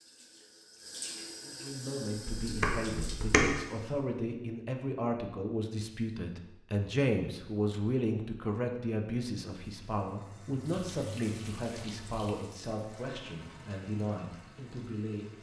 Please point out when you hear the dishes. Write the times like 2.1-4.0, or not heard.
2.1-3.5.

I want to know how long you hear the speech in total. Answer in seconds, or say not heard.
14 s.